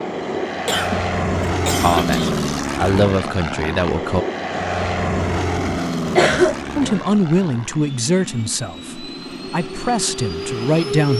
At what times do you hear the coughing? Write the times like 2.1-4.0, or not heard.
0.7-2.4, 6.2-7.0.